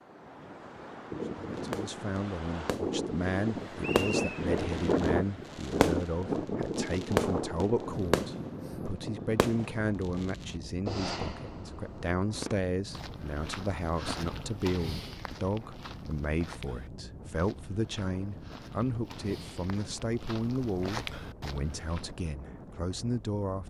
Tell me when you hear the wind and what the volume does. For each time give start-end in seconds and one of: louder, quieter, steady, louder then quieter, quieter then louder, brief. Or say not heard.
0.0-23.6 quieter.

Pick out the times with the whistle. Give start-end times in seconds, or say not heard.
3.8-4.5.